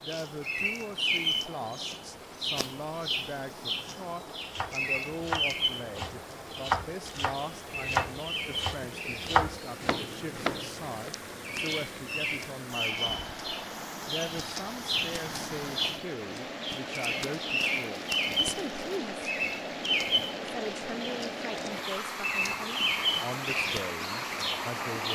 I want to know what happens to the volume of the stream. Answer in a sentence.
The volume of the stream goes up.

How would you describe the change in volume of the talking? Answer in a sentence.
The volume of the talking stays about the same.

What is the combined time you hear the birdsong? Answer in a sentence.
The birdsong can be heard for 25 seconds in total.